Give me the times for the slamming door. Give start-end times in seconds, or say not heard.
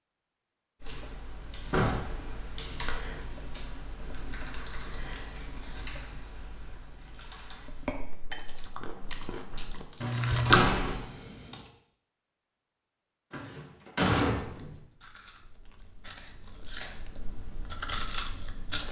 1.7-2.1, 10.4-11.0, 13.3-14.8.